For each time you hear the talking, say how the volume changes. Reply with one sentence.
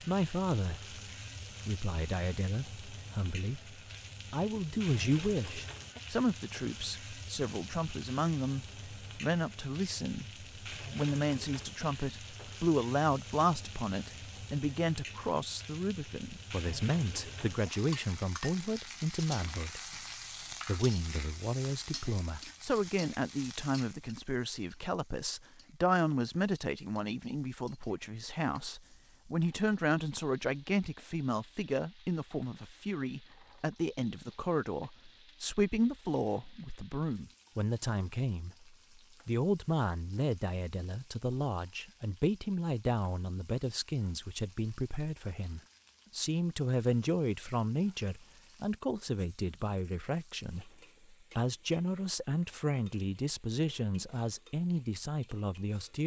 You can hear the talking briefly from 0.0 to 0.9 s; from 1.6 to 19.8 s, at a steady volume; and from 20.6 to 56.0 s, at a steady volume.